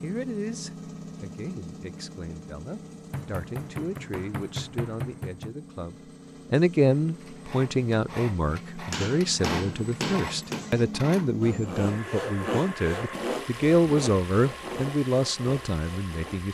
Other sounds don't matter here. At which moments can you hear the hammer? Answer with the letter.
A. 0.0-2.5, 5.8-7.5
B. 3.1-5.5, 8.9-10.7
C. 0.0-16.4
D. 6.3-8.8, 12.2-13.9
B.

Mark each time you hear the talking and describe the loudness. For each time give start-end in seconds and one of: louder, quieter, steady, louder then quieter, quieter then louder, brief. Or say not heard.
0.0-16.4 louder.